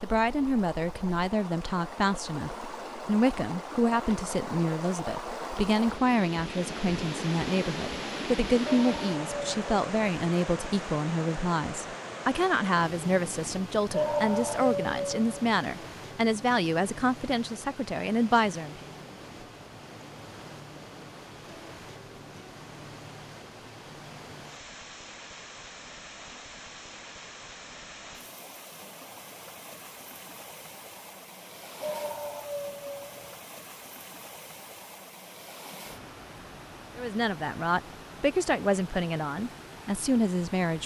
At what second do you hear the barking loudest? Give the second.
14 s.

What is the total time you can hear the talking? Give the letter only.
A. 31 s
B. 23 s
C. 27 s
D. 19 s
B.